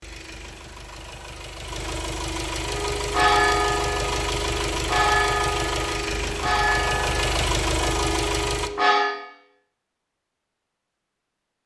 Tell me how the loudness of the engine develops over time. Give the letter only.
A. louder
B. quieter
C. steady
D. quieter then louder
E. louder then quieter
A.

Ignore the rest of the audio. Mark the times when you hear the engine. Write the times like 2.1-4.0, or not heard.
0.0-8.7.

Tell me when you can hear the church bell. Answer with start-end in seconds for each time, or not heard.
2.6-9.2.